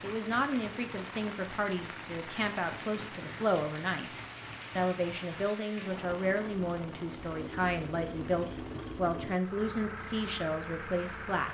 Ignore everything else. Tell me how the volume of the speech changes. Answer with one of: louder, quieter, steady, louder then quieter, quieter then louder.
steady.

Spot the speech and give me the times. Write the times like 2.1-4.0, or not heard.
0.0-11.5.